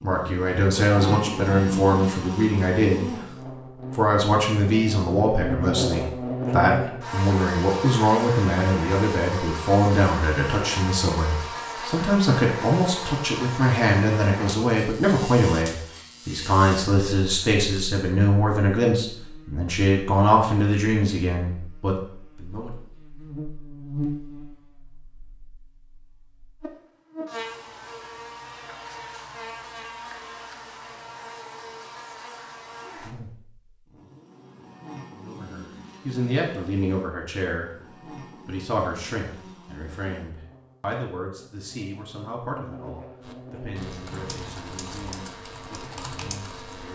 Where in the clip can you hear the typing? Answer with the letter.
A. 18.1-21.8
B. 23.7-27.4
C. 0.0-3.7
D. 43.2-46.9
D.